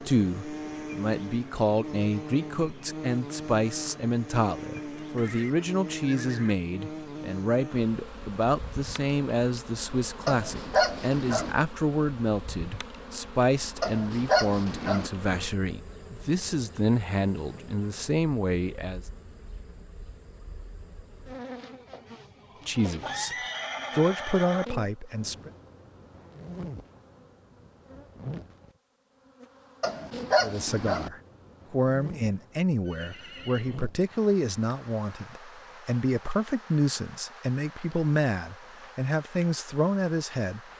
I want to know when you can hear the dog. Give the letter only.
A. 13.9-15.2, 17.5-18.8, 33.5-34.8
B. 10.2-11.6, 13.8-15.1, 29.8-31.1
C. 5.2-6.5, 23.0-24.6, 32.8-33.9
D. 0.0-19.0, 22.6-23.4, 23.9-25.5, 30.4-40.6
B.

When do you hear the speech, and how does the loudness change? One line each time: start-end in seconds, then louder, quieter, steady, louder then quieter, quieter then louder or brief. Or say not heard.
0.0-19.0 steady
22.6-23.4 brief
23.9-25.5 brief
30.4-40.6 steady.